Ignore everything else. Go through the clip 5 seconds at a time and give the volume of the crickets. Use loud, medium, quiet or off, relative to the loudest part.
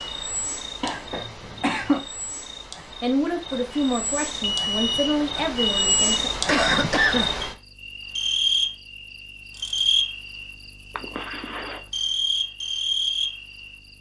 medium, loud, loud.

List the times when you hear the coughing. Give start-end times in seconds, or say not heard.
0.8-2.0, 6.5-7.3, 10.9-11.8.